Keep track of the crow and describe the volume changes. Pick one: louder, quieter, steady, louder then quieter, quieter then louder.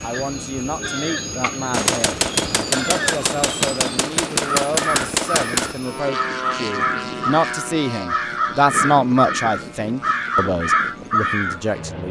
louder.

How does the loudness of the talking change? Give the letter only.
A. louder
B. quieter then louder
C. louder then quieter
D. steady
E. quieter
C.